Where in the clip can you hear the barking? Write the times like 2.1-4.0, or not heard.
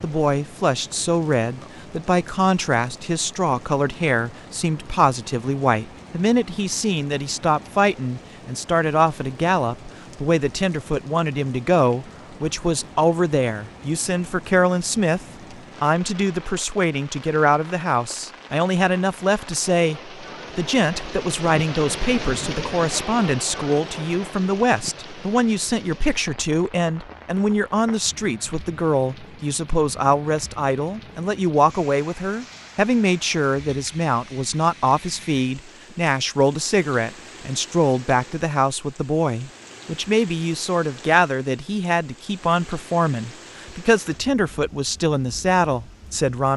not heard.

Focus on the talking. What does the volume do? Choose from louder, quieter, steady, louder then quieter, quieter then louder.
steady.